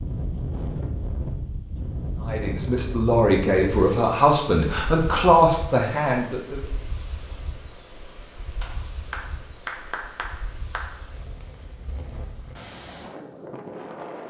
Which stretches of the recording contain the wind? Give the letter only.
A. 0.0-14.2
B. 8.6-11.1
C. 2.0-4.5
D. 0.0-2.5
A.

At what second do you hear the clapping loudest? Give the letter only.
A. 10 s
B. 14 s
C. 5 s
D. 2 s
A.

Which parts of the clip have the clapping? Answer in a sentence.
You can hear the clapping from 8.6 to 11.1 s.